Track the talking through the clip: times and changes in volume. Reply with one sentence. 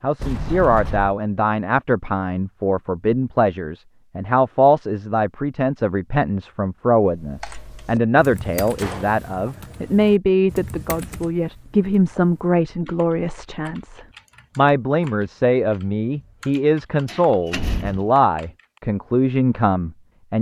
The talking can be heard from 0.0 to 20.3 s, at a steady volume.